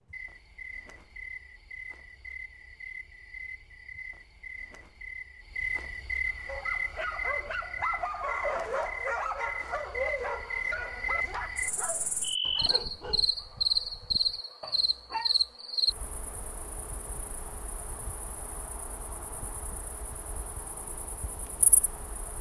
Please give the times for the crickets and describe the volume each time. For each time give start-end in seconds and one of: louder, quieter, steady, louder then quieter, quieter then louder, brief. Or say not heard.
0.0-22.3 louder then quieter.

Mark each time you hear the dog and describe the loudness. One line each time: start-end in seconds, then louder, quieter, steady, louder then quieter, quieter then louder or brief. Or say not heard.
6.2-15.6 quieter.